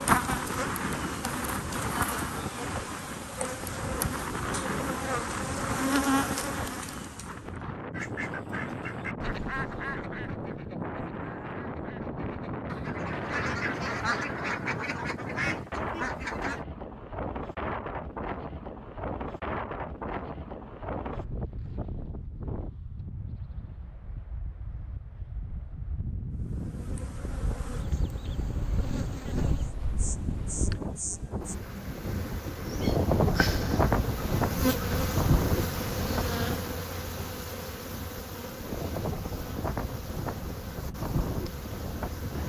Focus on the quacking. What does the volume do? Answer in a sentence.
The loudness of the quacking goes down, then up.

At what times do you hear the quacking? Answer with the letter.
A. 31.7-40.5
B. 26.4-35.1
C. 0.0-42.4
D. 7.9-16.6
D.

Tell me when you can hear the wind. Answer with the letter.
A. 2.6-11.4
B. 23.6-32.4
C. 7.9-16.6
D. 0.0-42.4
D.